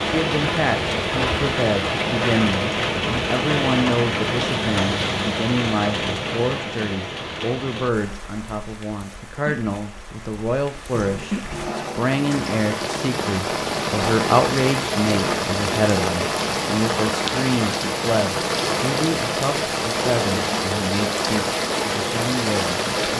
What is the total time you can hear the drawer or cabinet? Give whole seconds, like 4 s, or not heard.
2 s.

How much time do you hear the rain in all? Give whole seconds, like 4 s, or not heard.
23 s.